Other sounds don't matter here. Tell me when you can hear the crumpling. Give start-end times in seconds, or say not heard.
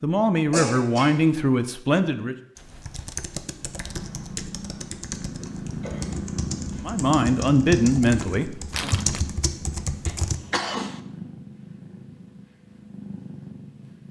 8.7-9.3.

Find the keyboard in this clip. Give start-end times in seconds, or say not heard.
2.5-10.4.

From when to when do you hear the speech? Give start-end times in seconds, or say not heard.
0.0-2.4, 6.8-8.9.